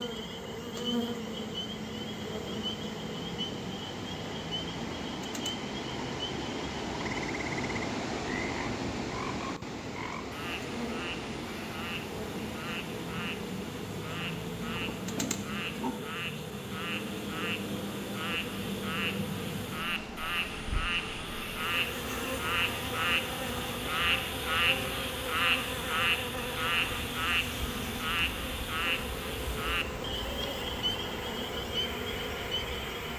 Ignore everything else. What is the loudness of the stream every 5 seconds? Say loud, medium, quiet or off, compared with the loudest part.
medium, loud, medium, medium, medium, medium, medium.